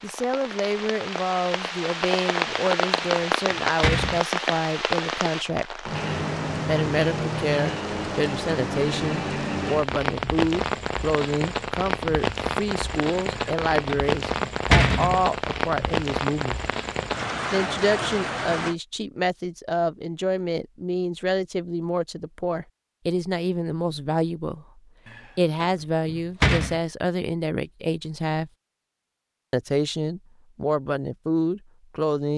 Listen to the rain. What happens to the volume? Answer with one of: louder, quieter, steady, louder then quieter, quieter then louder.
steady.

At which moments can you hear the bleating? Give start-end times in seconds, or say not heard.
not heard.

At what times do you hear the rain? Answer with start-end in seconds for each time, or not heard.
0.0-18.8.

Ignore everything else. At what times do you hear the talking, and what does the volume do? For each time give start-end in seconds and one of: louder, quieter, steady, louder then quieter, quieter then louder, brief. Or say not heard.
0.0-5.8 steady
6.7-16.6 steady
17.5-28.5 steady
29.5-32.3 brief.